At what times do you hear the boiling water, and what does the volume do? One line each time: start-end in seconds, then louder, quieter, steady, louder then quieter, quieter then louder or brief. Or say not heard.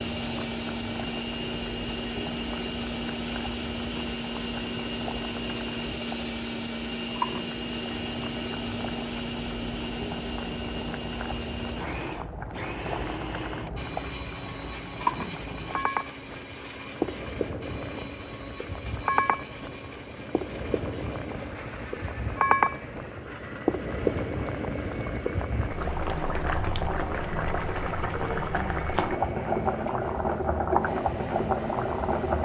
0.0-32.3 louder.